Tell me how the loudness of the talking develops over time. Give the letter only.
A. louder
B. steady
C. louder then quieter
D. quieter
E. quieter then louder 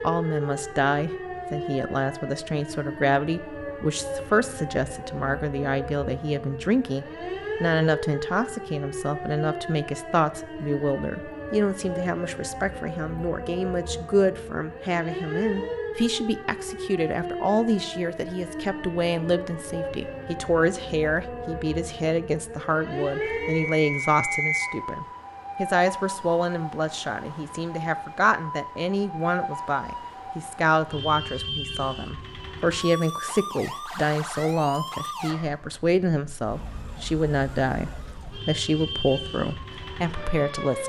B.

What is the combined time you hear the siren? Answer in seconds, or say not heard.
41 s.